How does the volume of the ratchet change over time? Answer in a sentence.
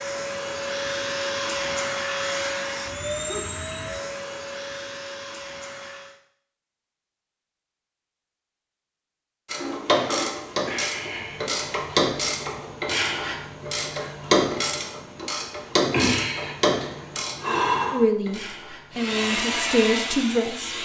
The volume of the ratchet stays about the same.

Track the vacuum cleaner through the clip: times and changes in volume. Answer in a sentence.
The vacuum cleaner can be heard from 0.0 to 6.2 s, getting quieter; and briefly from 18.9 to 20.7 s.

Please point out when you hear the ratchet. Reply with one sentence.
You can hear the ratchet from 9.4 to 19.1 s.